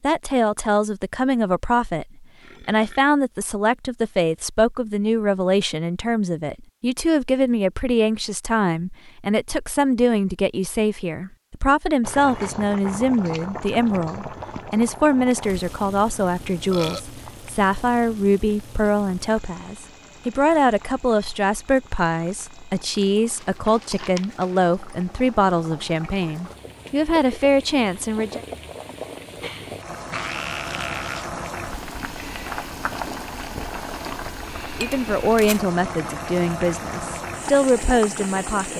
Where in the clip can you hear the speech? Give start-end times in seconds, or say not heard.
0.0-28.4, 34.8-38.7.